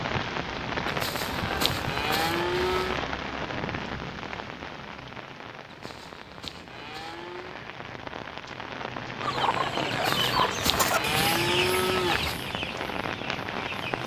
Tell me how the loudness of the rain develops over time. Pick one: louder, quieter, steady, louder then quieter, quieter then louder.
quieter then louder.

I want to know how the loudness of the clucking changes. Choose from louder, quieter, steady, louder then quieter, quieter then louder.
quieter.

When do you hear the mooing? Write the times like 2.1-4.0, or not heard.
0.8-3.0, 5.7-7.6, 9.9-12.4.